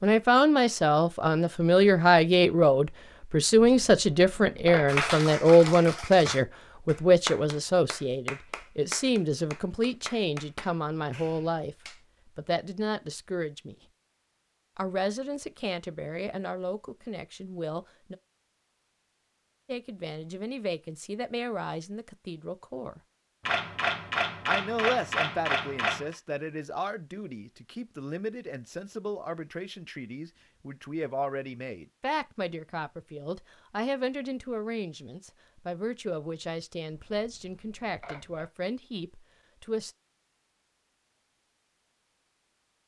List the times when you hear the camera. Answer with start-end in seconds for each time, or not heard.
3.5-5.1, 23.4-26.1, 36.9-38.5.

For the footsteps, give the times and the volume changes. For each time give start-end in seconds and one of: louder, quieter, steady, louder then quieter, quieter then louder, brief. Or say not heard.
not heard.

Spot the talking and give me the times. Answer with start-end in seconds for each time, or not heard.
0.0-11.8, 12.3-13.8, 14.8-18.1, 19.6-23.0, 24.4-39.9.